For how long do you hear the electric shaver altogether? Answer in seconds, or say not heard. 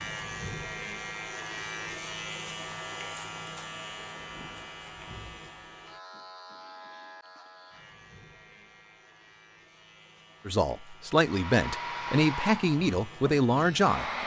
14 s.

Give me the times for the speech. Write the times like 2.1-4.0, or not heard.
10.4-14.1.